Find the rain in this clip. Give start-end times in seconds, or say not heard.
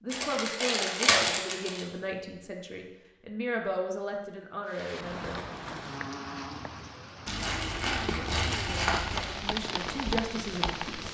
4.7-11.0.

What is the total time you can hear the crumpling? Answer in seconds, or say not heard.
4 s.